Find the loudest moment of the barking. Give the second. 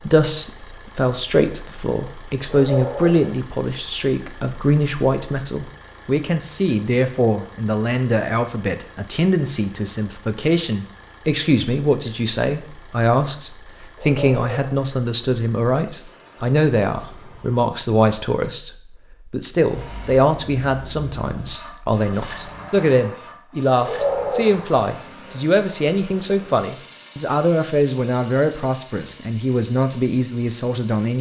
24 s.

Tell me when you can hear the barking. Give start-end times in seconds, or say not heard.
2.5-3.4, 13.9-14.8, 23.8-24.7.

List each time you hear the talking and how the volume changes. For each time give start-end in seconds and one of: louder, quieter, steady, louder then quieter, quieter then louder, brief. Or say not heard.
0.0-31.1 steady.